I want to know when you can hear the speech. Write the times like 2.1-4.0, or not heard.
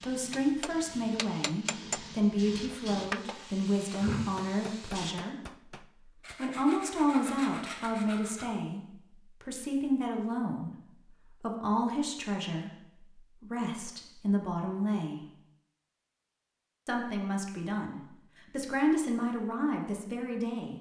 0.0-15.2, 16.9-20.7.